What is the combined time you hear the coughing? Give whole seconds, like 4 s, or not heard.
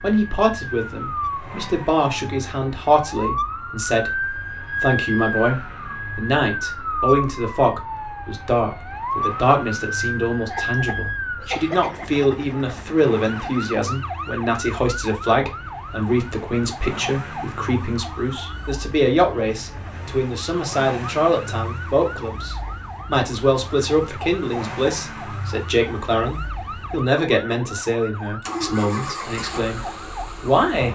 2 s.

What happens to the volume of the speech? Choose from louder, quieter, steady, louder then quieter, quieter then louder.
steady.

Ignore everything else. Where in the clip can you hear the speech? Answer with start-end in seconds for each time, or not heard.
0.0-30.9.